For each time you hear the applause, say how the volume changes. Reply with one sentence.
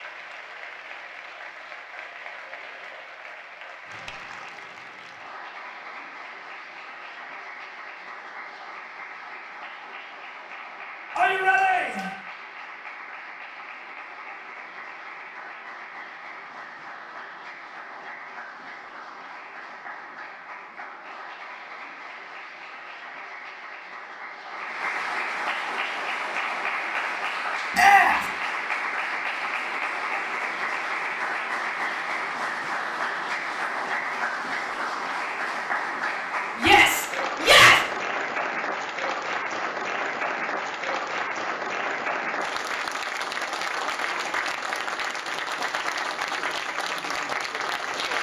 The applause can be heard from 0.0 to 48.1 s, getting louder.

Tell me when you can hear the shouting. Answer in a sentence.
The shouting can be heard from 11.2 to 12.1 s, from 27.8 to 28.2 s and from 36.6 to 37.8 s.